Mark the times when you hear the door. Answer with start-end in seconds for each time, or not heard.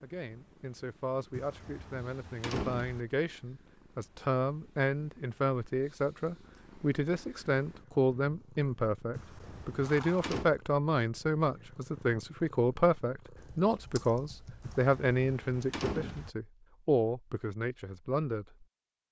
1.4-3.0, 9.2-10.5, 14.6-16.3.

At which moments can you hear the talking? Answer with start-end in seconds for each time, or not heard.
0.0-18.6.